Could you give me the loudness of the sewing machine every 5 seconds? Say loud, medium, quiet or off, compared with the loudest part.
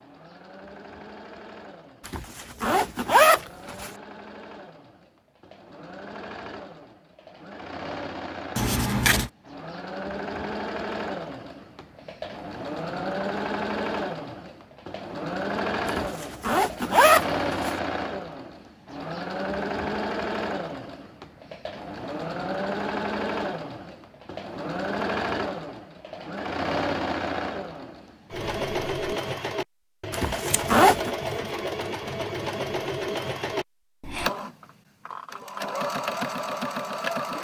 quiet, medium, loud, loud, loud, loud, loud, loud.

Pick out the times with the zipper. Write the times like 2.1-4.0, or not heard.
2.0-3.9, 15.8-17.8, 30.1-31.1.